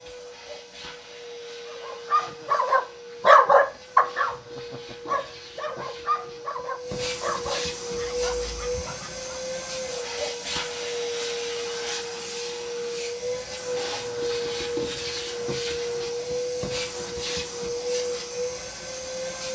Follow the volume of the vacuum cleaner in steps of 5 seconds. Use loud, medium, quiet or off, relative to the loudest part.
medium, loud, loud, loud.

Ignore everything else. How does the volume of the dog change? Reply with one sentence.
The loudness of the dog goes down.